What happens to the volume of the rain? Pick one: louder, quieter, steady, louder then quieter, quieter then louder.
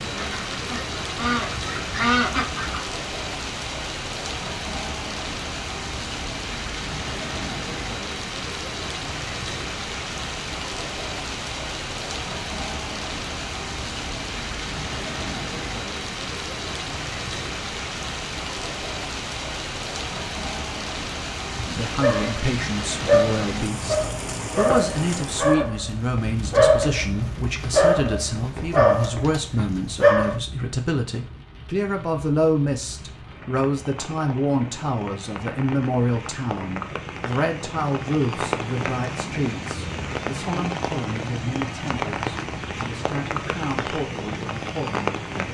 quieter then louder.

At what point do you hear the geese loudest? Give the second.
2 s.